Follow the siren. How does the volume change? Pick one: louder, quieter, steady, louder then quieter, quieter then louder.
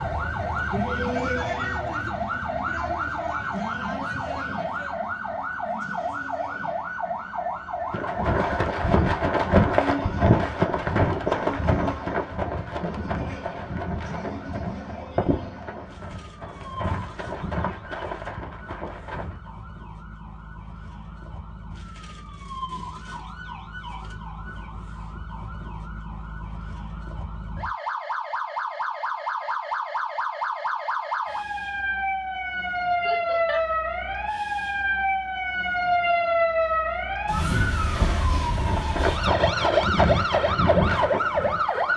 quieter then louder.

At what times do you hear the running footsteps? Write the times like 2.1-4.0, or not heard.
7.9-19.5, 38.5-41.9.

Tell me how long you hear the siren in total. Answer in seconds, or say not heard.
42 s.